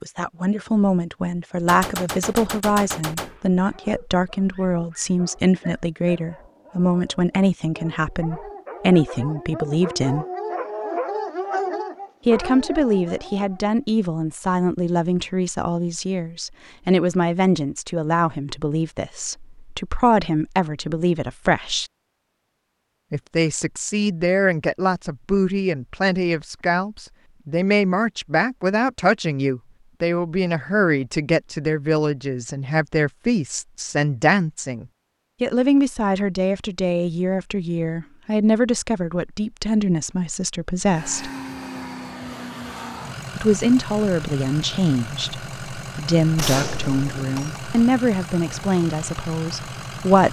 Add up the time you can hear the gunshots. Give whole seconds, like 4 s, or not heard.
3 s.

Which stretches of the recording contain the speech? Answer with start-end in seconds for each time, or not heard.
0.0-10.2, 12.2-21.9, 23.1-41.3, 43.4-50.2.